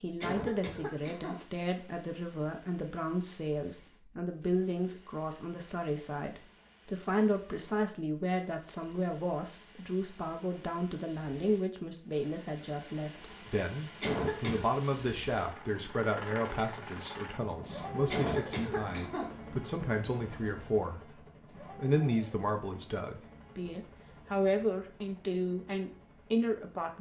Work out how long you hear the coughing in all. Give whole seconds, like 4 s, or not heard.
3 s.